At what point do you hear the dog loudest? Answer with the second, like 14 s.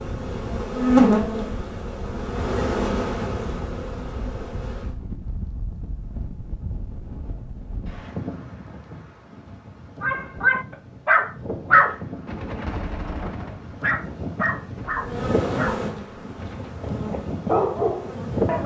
12 s.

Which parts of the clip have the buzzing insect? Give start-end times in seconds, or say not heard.
0.0-5.0, 14.9-18.6.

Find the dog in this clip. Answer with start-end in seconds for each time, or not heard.
10.0-18.6.